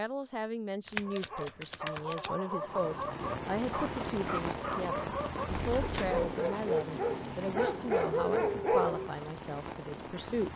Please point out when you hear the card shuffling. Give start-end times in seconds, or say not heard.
0.8-2.3, 5.5-6.2.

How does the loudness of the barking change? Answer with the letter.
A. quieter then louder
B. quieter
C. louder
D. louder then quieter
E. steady
C.